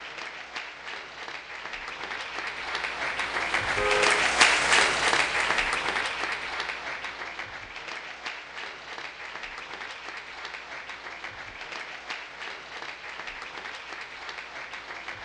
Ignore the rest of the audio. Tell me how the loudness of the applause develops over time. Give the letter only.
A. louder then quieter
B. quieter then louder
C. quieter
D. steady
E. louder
A.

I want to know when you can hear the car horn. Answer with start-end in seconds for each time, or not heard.
3.8-4.3.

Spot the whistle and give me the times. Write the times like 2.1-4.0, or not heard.
not heard.